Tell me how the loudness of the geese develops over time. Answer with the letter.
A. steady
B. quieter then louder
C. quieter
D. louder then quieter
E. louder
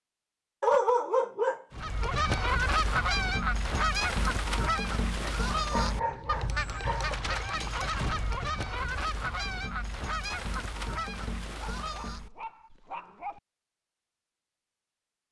C.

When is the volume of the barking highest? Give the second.
1 s.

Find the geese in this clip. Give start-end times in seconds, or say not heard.
1.7-12.3.